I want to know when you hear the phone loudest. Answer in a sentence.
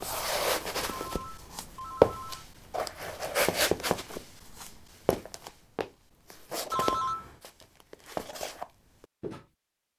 The loudest moment of the phone is at 7 seconds.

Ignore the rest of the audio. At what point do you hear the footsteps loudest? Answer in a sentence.
The loudest moment of the footsteps is at 2 seconds.